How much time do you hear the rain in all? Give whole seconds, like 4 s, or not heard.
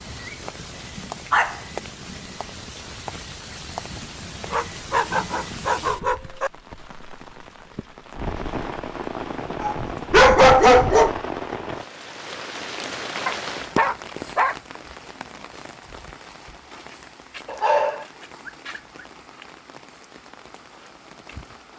22 s.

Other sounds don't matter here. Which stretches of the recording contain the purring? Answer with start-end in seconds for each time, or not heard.
not heard.